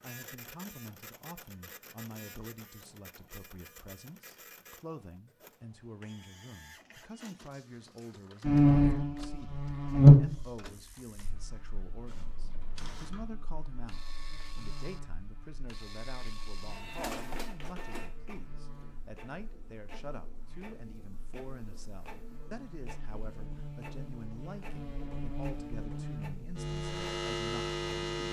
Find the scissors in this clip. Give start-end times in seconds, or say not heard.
12.1-13.2.